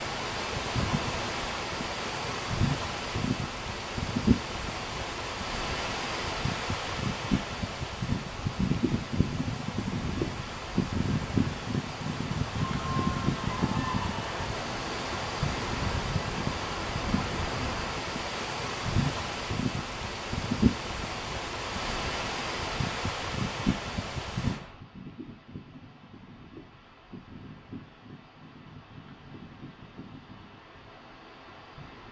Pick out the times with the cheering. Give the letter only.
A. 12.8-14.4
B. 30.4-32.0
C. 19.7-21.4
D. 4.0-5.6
A.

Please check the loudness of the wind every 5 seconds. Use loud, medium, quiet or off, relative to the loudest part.
loud, loud, loud, loud, loud, quiet, quiet.